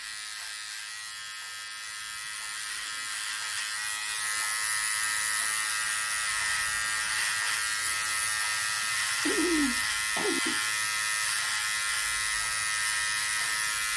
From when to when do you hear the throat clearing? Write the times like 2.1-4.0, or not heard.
9.2-10.6.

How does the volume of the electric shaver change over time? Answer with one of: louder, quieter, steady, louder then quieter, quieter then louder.
louder.